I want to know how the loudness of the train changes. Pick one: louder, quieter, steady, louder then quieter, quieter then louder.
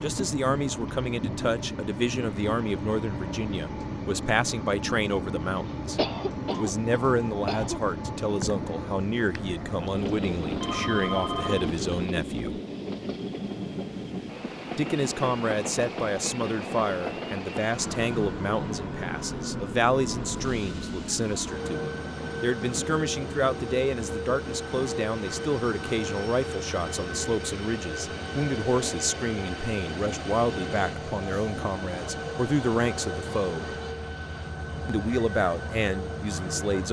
steady.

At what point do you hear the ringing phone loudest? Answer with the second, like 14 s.
11 s.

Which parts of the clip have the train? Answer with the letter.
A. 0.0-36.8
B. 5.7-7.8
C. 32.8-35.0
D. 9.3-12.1
A.